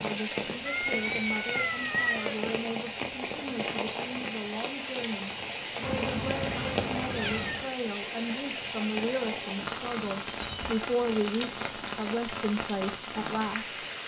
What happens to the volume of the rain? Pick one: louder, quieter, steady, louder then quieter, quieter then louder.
steady.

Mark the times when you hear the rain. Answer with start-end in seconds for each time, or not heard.
0.0-14.0.